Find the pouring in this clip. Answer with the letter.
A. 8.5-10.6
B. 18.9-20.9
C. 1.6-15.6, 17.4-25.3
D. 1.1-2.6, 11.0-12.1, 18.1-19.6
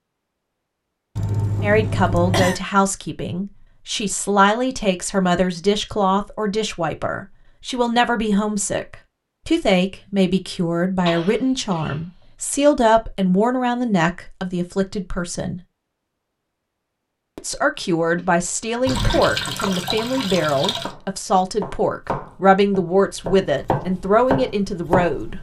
B.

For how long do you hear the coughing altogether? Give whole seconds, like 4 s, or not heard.
4 s.